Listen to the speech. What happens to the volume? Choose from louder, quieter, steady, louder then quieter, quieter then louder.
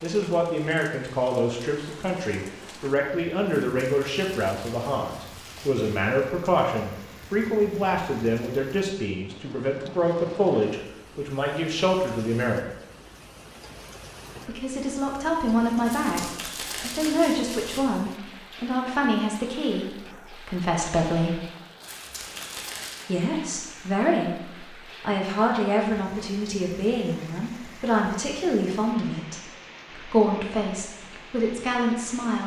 steady.